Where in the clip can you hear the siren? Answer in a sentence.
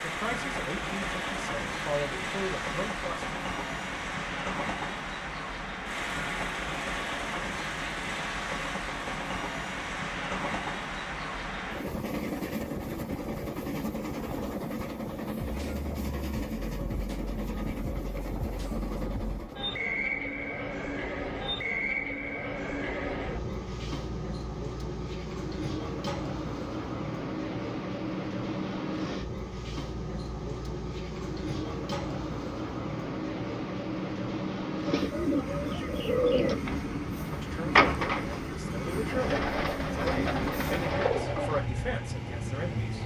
You can't hear the siren here.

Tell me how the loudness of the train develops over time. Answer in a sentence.
The volume of the train stays about the same.